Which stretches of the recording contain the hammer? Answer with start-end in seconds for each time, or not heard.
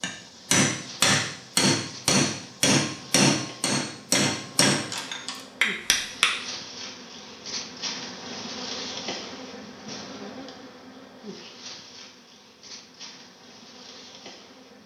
0.0-6.4.